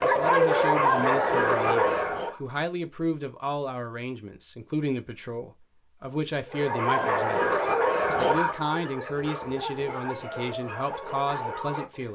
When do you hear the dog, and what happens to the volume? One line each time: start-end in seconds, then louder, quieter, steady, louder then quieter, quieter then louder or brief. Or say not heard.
0.0-2.4 brief
6.5-12.1 quieter.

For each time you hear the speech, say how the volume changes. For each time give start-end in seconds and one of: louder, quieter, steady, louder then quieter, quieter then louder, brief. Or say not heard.
0.0-12.1 steady.